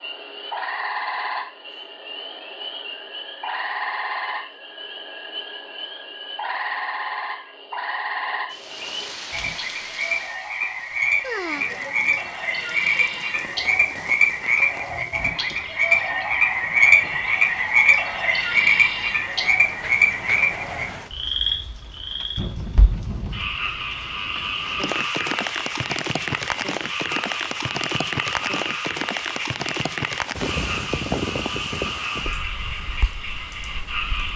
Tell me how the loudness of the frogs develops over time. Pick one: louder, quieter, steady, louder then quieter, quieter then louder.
louder then quieter.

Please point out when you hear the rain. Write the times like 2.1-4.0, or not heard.
8.5-34.3.